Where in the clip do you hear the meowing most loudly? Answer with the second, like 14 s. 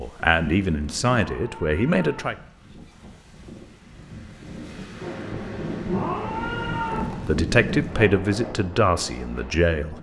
6 s.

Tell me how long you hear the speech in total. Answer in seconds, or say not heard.
5 s.